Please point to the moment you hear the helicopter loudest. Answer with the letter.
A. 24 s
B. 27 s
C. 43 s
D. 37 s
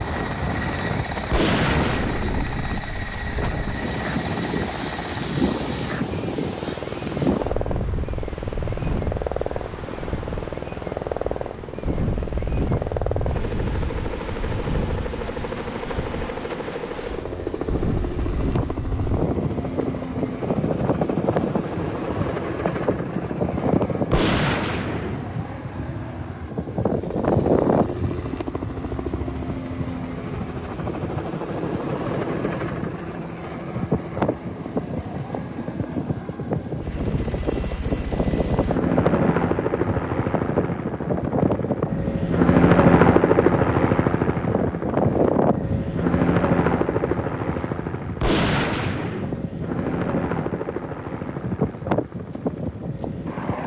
C.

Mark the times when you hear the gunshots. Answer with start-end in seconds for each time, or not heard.
1.3-2.5, 24.1-25.4, 48.2-49.5.